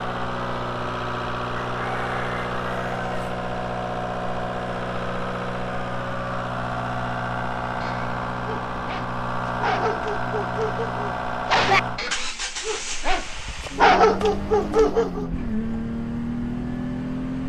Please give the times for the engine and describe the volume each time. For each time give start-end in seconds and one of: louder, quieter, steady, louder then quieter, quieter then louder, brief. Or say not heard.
0.0-17.4 steady.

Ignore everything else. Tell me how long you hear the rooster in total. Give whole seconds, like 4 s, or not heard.
2 s.